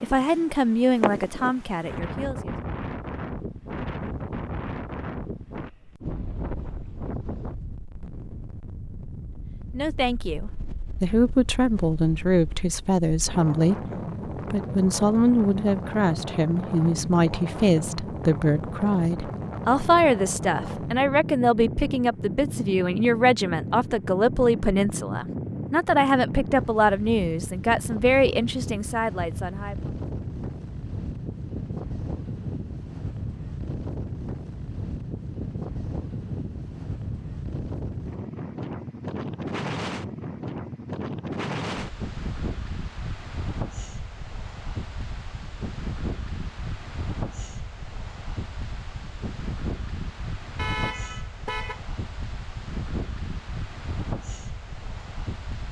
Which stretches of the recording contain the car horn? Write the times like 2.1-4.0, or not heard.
50.5-51.8.